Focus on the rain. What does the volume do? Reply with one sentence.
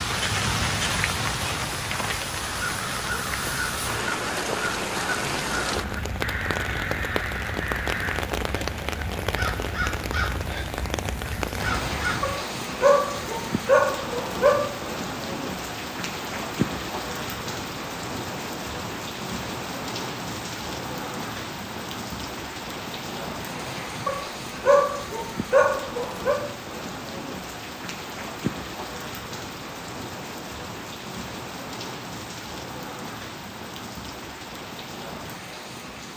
The loudness of the rain goes down.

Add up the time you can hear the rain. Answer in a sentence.
You can hear the rain for 36 seconds altogether.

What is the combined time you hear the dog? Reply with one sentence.
The dog can be heard for 5 seconds in total.